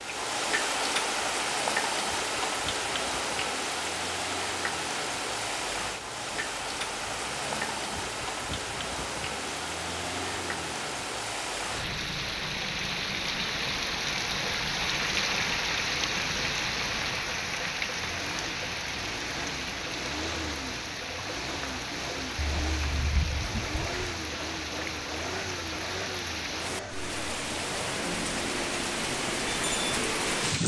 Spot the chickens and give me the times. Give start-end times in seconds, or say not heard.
22.4-24.1.